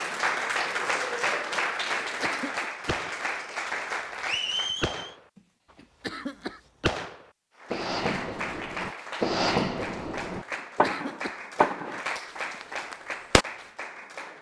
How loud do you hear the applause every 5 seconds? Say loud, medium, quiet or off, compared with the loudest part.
loud, medium, medium.